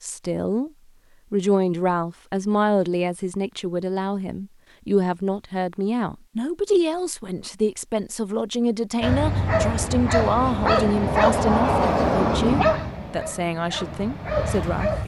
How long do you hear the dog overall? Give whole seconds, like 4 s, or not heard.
6 s.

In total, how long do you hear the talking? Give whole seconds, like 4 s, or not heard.
14 s.